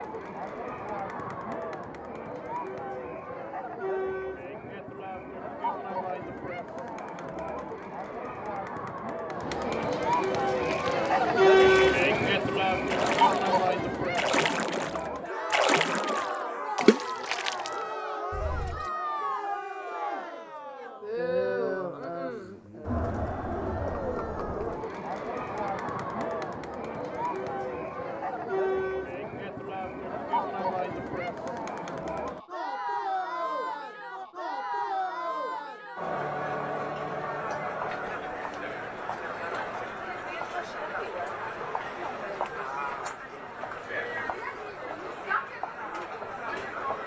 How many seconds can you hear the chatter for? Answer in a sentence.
You can hear the chatter for 47 seconds altogether.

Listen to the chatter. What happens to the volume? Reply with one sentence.
The loudness of the chatter goes up, then down.